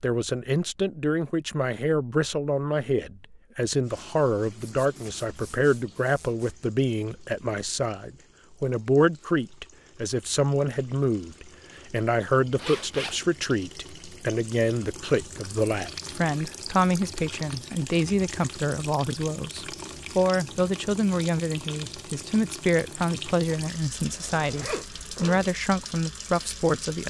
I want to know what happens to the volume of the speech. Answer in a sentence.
The volume of the speech stays about the same.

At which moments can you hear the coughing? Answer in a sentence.
The coughing can't be heard in this clip.